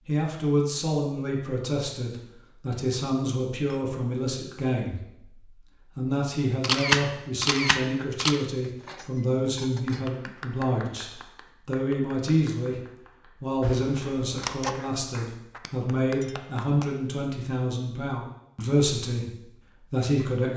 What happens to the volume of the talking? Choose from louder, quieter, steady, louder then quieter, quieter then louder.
steady.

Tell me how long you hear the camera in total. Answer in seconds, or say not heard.
3 s.